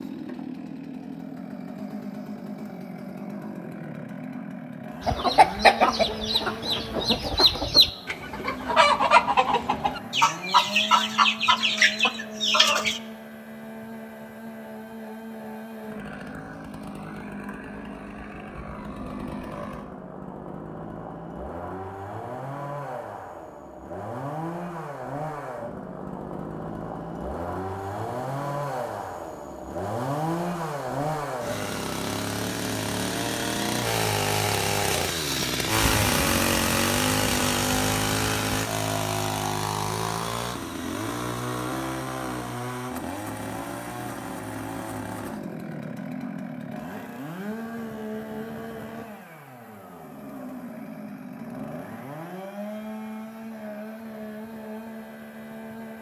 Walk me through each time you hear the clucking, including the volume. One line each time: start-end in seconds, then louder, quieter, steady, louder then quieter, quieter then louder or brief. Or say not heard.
5.0-13.0 steady.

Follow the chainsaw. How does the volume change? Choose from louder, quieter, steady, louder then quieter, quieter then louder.
louder then quieter.